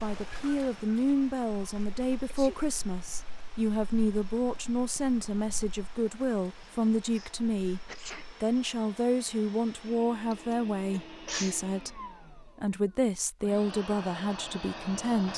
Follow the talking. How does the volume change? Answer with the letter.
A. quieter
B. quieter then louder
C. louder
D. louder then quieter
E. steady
E.